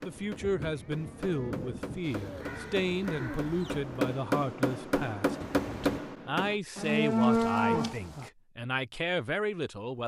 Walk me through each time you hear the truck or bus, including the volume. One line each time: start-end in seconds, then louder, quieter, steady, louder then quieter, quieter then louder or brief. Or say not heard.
not heard.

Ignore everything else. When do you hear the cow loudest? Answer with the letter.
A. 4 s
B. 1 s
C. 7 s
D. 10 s
C.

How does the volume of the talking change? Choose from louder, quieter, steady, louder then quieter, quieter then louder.
steady.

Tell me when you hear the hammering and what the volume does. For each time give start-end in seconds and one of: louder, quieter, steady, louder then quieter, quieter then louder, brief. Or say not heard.
0.0-6.5 louder.